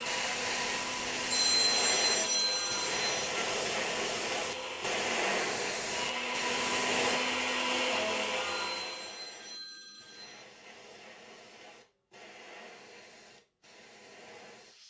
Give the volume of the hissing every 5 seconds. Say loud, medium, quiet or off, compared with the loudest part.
loud, loud, quiet.